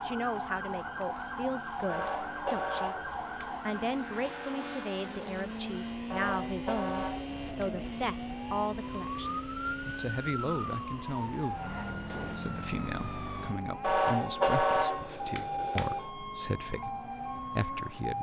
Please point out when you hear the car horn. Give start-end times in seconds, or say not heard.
1.9-3.6, 6.1-7.8, 13.8-16.1.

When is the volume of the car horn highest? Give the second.
15 s.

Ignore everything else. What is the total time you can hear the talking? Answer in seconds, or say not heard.
18 s.